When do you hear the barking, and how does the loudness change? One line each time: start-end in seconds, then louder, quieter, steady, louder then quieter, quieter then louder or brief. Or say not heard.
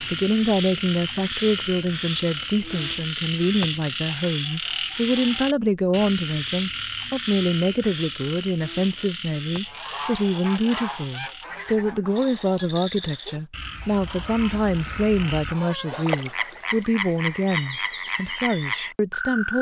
not heard.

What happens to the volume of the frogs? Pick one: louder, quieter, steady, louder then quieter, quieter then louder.
quieter then louder.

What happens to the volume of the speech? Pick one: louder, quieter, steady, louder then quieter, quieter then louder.
steady.